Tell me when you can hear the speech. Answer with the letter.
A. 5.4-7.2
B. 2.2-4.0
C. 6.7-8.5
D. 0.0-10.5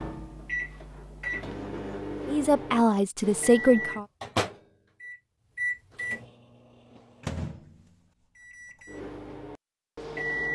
B.